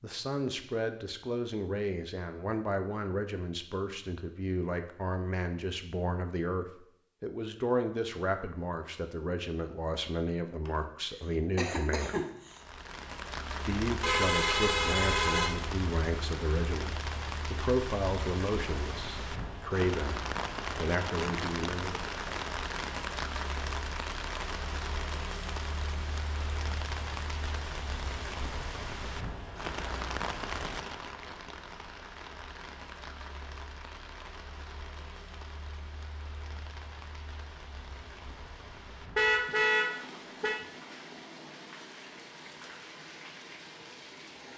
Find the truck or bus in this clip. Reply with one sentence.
You can't hear the truck or bus here.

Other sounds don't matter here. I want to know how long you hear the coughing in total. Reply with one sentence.
The coughing can be heard for 2 seconds in total.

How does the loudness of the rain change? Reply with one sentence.
The loudness of the rain goes down.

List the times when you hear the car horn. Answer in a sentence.
You can hear the car horn from 14.0 to 15.5 s and from 39.1 to 40.6 s.